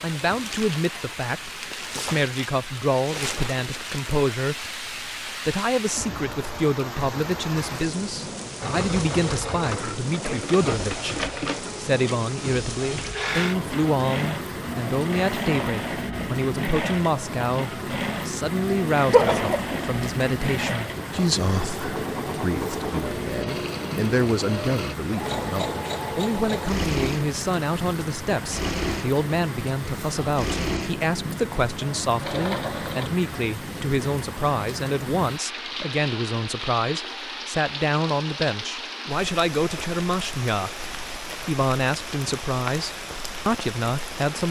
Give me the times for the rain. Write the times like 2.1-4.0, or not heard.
0.0-44.4.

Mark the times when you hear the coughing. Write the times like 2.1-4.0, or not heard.
19.1-19.8.